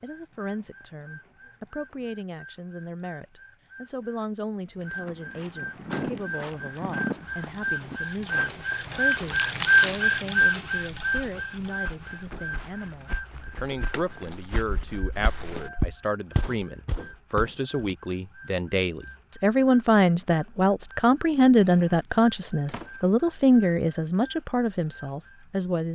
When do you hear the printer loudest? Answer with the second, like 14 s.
10 s.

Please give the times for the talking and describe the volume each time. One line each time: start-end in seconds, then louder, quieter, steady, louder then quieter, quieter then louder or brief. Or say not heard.
0.0-25.9 louder.